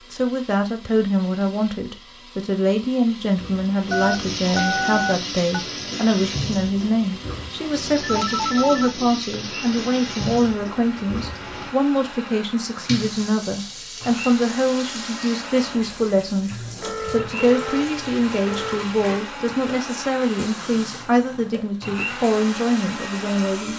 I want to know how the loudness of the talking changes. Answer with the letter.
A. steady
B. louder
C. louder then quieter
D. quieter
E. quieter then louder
A.